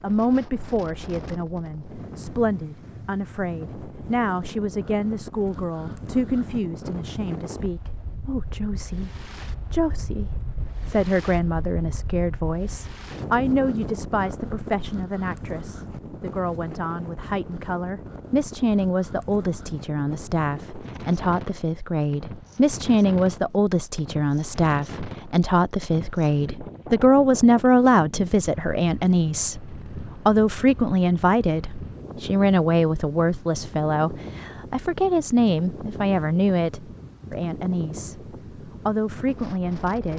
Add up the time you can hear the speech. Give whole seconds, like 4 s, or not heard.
40 s.